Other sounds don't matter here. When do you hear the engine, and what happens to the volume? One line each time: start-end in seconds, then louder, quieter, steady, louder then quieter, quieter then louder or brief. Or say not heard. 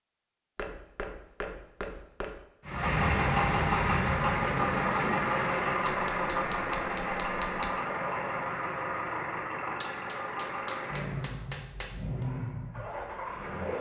2.6-13.7 quieter.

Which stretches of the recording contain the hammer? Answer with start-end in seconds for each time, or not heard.
0.6-2.4, 5.8-7.7, 9.8-12.2.